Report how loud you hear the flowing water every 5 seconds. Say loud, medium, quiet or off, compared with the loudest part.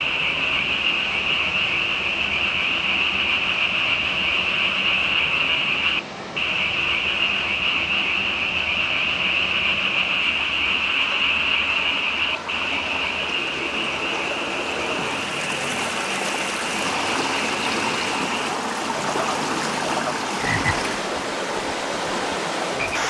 medium, medium, medium, loud, loud.